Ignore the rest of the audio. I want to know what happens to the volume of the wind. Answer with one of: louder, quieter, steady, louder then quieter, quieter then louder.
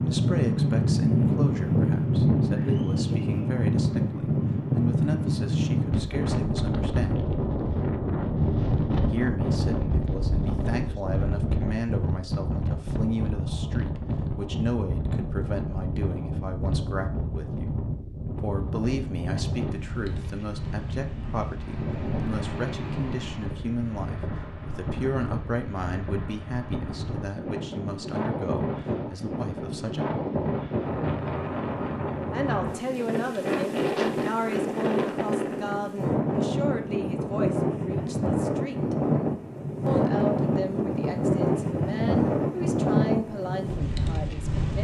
quieter then louder.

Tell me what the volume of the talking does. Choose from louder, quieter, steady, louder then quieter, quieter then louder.
steady.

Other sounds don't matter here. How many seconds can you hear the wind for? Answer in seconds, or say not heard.
45 s.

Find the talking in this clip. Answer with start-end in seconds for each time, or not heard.
0.0-7.2, 9.1-17.7, 18.4-30.1, 32.3-39.0, 39.9-44.7.